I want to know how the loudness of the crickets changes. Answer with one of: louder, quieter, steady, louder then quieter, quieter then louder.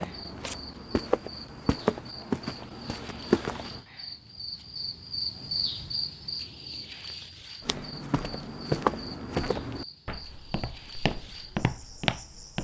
louder then quieter.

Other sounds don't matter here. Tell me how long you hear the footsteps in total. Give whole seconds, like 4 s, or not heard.
9 s.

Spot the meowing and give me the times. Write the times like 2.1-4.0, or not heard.
not heard.